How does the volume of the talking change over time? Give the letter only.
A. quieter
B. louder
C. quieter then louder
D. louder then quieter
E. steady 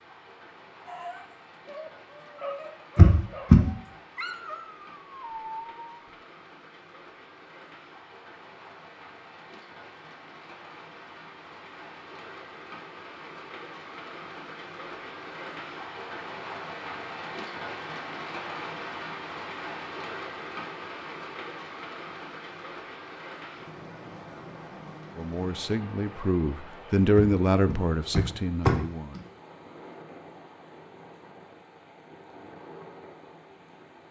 D.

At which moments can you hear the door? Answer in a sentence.
You can hear the door from 3.0 to 3.6 s and from 27.1 to 29.2 s.